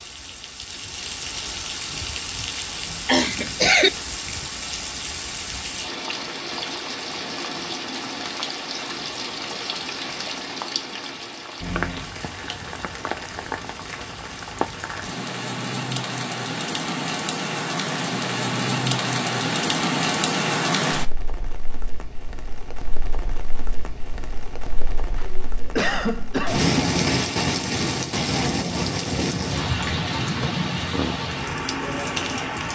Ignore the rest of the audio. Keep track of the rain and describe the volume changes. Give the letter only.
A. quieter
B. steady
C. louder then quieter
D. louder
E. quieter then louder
D.